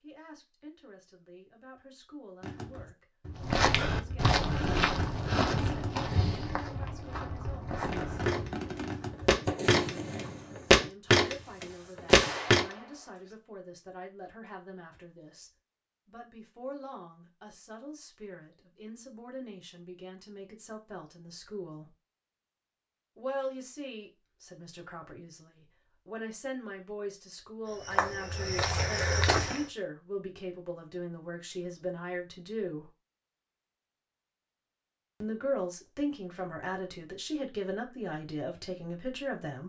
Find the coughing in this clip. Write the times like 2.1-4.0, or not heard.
not heard.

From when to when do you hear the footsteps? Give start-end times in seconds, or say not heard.
3.4-12.7, 27.6-29.6.